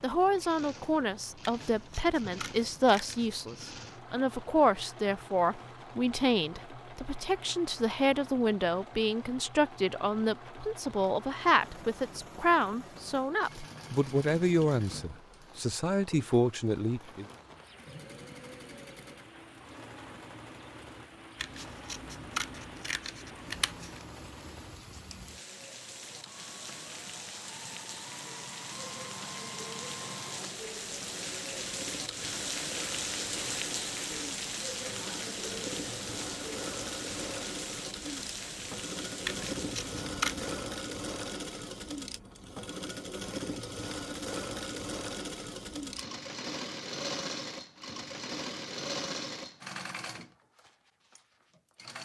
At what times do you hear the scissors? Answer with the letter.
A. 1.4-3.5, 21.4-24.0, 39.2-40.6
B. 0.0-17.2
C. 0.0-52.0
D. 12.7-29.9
A.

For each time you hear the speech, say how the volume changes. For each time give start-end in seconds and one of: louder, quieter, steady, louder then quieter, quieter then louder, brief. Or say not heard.
0.0-17.2 steady.